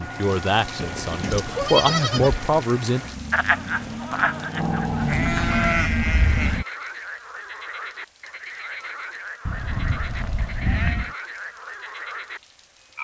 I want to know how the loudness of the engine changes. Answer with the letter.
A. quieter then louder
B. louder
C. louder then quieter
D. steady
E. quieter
B.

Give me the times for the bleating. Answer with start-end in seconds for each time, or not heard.
0.8-2.5, 5.0-6.6, 9.4-11.1.